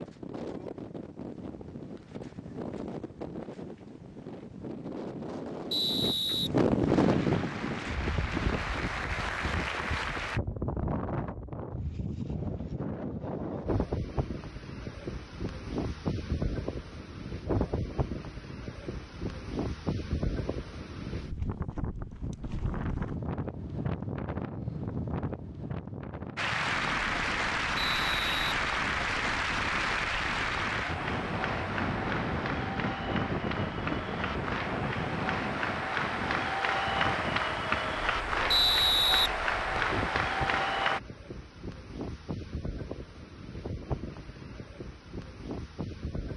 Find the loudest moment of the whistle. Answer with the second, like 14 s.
39 s.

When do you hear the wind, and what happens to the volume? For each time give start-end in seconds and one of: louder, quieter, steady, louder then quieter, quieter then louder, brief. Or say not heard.
0.0-46.3 quieter.